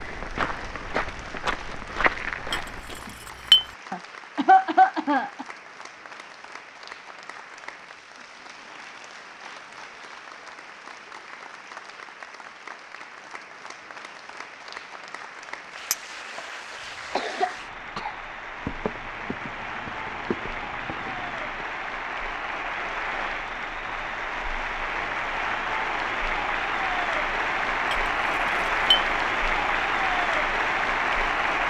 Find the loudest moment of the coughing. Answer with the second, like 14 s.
5 s.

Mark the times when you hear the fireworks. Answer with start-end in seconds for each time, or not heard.
not heard.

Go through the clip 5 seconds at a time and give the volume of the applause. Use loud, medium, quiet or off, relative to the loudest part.
quiet, quiet, quiet, quiet, medium, loud, loud.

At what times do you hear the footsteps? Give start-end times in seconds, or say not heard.
0.0-3.0, 18.6-21.6.